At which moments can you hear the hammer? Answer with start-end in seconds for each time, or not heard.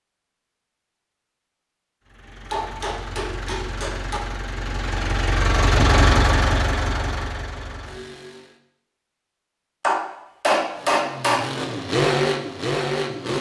2.5-4.2, 9.8-11.4.